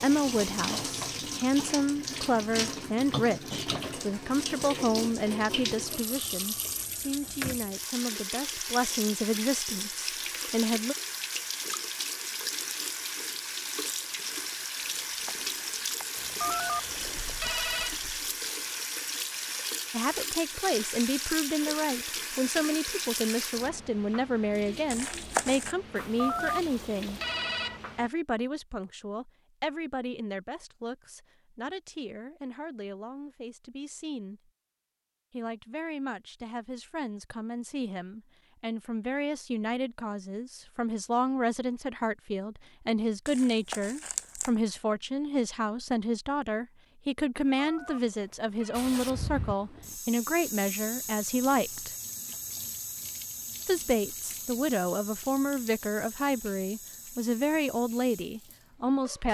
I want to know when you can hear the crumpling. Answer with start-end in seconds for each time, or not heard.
15.1-16.1, 24.9-25.8, 43.2-44.5.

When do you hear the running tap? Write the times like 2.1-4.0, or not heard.
0.0-28.1, 48.7-59.2.